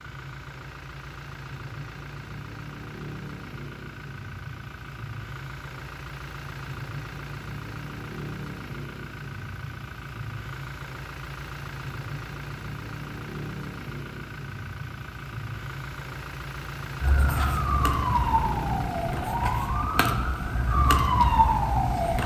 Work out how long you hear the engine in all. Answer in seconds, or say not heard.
22 s.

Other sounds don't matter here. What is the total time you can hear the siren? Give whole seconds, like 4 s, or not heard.
5 s.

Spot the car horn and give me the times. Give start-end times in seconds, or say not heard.
not heard.